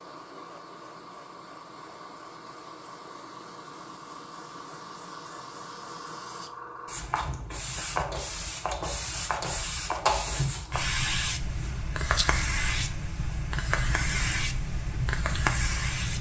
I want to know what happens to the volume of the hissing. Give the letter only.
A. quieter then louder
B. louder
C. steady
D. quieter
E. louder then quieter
B.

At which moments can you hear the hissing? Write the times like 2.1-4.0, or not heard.
0.0-16.1.